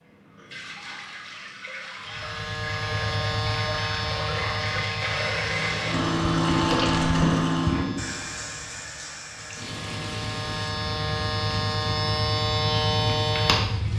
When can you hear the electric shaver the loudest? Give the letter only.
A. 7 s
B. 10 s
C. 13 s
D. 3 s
C.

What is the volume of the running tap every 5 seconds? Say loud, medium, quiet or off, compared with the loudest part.
medium, loud, quiet.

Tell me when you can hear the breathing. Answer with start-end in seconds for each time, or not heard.
not heard.